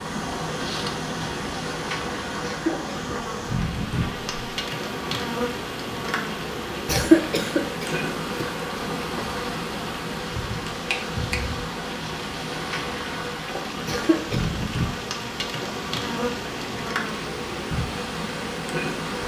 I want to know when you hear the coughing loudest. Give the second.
7 s.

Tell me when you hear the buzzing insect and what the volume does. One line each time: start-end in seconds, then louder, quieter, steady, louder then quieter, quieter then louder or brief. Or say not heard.
0.0-19.2 steady.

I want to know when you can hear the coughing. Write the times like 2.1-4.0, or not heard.
2.4-3.1, 6.8-8.5, 13.8-14.6.